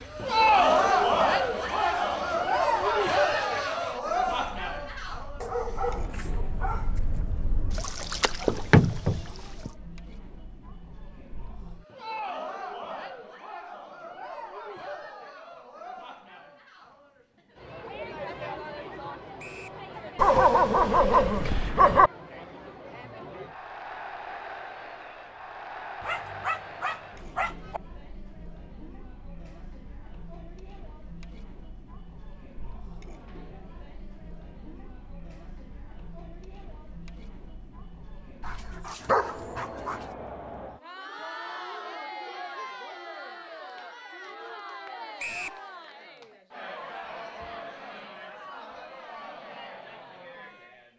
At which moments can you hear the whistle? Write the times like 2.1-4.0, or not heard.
19.4-19.8, 45.1-45.6.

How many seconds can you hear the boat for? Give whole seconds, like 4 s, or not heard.
10 s.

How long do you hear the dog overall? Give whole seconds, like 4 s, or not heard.
7 s.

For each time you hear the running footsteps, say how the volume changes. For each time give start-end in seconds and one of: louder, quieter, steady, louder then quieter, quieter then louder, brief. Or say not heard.
not heard.